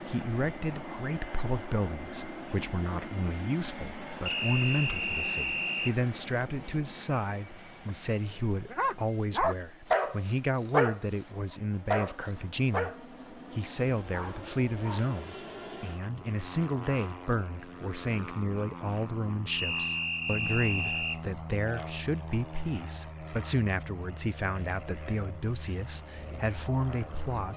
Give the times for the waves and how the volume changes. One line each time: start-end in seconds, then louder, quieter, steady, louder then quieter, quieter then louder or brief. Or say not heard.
not heard.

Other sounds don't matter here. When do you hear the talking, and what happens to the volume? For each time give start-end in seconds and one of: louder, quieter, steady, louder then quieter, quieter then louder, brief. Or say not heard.
0.0-27.5 steady.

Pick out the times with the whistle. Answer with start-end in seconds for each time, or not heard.
4.2-6.0, 19.5-21.2.